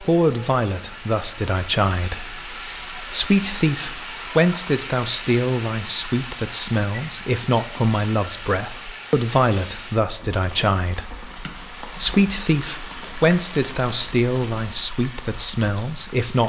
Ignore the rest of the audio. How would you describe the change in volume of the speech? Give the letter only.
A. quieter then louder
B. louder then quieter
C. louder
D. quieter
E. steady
E.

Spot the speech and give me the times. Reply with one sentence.
You can hear the speech from 0.0 to 16.4 s.